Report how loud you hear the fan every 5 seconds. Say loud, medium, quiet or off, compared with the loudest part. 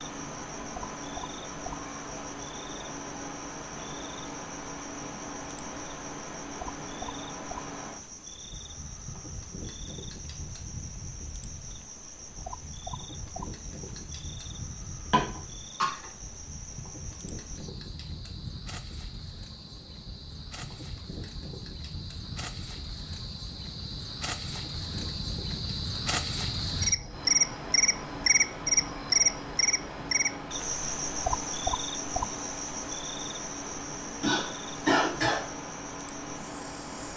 loud, loud, medium, medium, medium, loud, loud, loud.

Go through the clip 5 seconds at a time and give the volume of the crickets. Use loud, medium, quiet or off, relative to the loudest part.
quiet, quiet, quiet, quiet, quiet, loud, medium, quiet.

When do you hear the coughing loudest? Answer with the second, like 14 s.
35 s.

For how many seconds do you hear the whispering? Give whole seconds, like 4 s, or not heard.
not heard.